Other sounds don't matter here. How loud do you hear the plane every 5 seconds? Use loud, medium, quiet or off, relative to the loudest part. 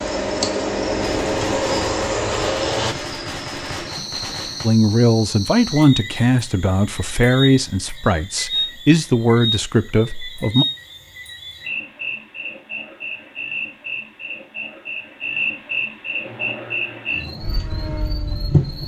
loud, off, off, quiet.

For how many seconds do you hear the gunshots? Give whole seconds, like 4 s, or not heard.
4 s.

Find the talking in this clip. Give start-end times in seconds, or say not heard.
4.6-10.7.